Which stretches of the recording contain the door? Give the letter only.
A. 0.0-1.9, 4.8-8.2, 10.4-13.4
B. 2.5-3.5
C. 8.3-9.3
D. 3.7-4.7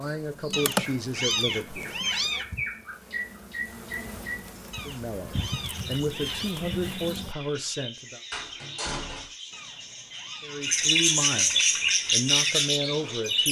C.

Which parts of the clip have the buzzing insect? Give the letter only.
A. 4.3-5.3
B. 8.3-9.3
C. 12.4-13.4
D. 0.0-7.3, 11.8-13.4
D.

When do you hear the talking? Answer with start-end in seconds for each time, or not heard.
0.0-1.9, 4.8-8.2, 10.4-13.4.